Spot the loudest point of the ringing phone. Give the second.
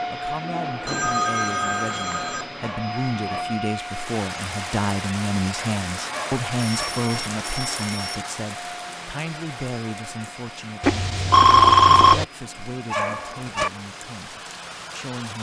12 s.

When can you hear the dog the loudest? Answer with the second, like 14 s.
13 s.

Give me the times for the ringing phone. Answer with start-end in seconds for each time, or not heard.
0.8-2.8, 6.5-8.2, 10.8-12.2.